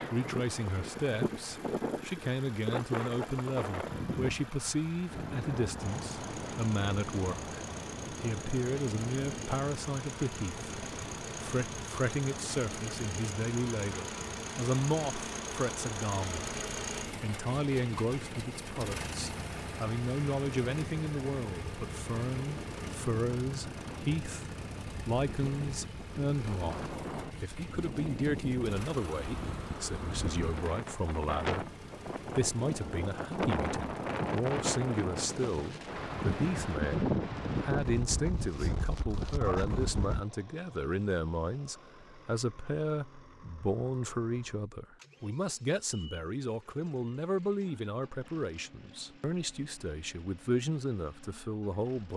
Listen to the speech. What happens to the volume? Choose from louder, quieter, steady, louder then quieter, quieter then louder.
steady.